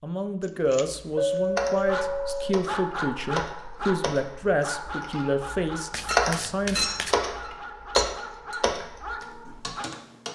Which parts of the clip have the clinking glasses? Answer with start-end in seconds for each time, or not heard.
1.1-2.5, 6.0-8.6.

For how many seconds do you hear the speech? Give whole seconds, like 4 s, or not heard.
7 s.